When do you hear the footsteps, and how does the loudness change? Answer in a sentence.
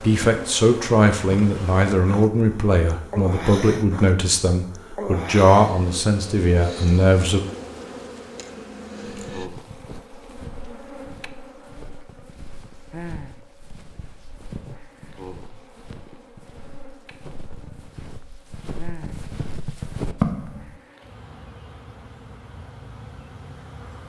The footsteps can be heard from 9.1 to 20.8 s, getting louder.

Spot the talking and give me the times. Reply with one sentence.
The talking can be heard from 0.0 to 7.4 s.